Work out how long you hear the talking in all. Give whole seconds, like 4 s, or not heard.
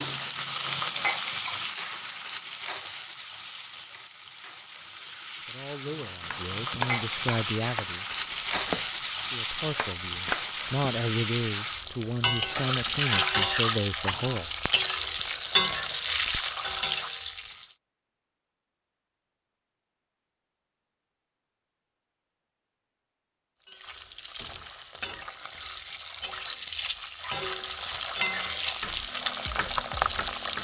8 s.